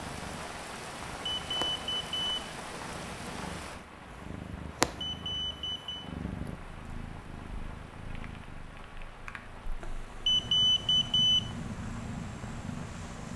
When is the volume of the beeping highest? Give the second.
11 s.